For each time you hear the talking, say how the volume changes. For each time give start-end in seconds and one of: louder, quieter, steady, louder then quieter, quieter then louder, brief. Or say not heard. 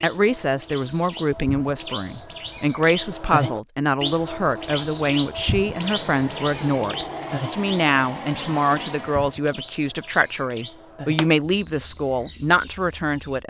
0.0-13.4 steady.